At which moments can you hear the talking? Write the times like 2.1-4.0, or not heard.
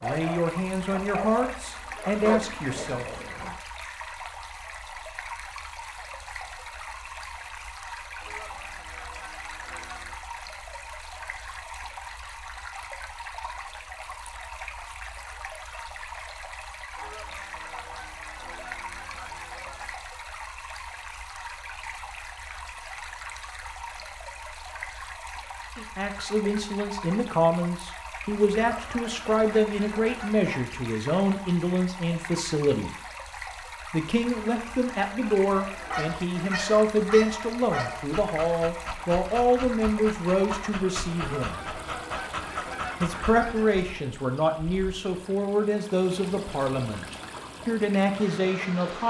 0.0-3.2, 25.8-32.9, 33.9-41.6, 43.0-49.0.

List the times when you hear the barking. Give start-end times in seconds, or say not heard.
0.0-3.5, 35.6-43.5.